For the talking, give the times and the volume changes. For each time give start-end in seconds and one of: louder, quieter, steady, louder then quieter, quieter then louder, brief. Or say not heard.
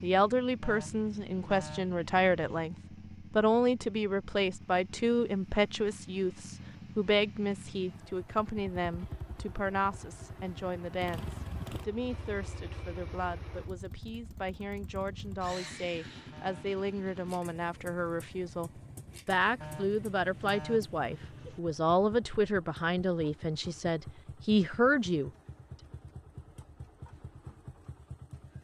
0.0-25.3 quieter then louder.